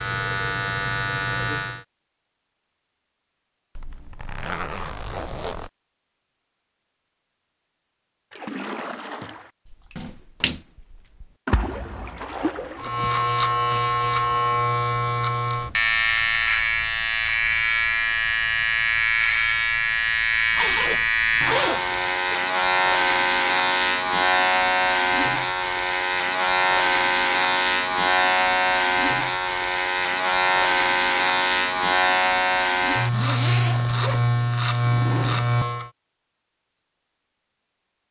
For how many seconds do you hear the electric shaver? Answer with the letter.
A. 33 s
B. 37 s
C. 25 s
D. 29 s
C.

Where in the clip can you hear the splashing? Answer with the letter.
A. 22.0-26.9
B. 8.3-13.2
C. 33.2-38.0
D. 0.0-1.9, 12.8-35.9
B.